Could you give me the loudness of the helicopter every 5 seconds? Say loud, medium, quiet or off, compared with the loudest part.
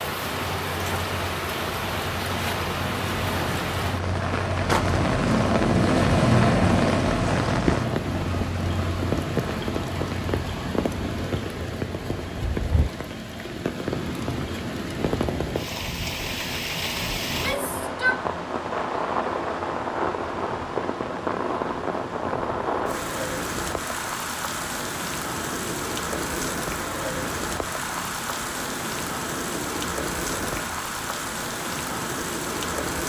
medium, loud, quiet, quiet, quiet, quiet, quiet.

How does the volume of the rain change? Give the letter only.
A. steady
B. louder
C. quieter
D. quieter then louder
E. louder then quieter
A.